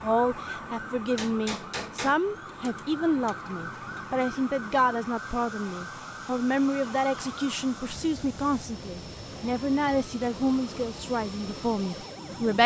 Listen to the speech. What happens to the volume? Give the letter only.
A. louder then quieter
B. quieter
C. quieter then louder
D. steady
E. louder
D.